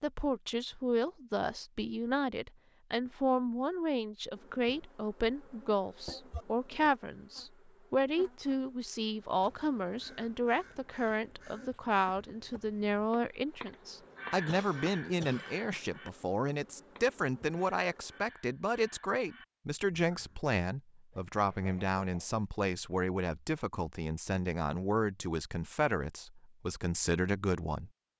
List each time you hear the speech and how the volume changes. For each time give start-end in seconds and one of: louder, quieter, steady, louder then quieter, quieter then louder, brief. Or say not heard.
0.0-27.9 steady.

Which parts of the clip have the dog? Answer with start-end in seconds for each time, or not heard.
not heard.